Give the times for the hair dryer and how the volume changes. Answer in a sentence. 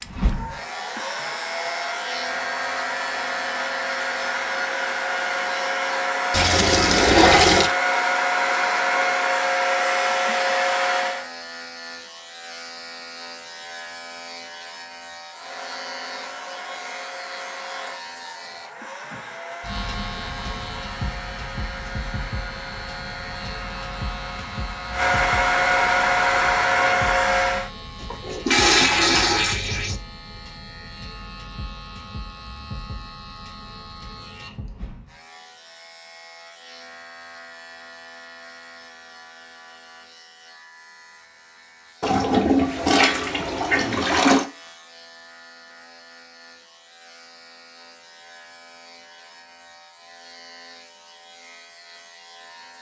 You can hear the hair dryer from 0.0 to 11.2 s, getting louder; and from 15.3 to 27.7 s, getting louder.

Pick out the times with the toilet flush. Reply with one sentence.
You can hear the toilet flush from 6.3 to 7.7 s, from 28.1 to 29.9 s and from 42.0 to 44.5 s.